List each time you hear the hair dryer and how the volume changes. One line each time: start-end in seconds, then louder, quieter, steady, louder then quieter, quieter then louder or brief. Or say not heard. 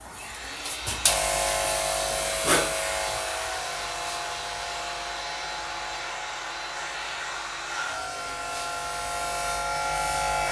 0.0-10.4 steady.